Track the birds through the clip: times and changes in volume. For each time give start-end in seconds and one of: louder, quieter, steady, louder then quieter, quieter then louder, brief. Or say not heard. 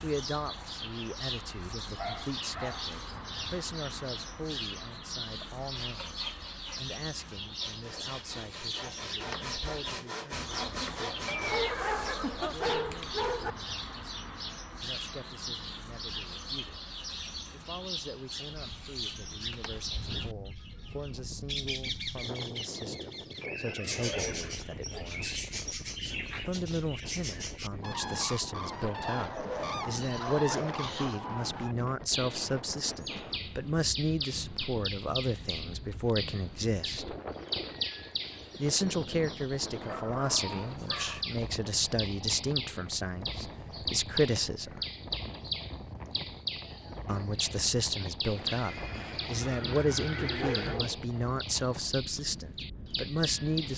0.0-53.7 steady.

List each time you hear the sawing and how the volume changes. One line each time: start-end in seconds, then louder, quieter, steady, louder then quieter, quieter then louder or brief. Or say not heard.
5.7-11.6 louder.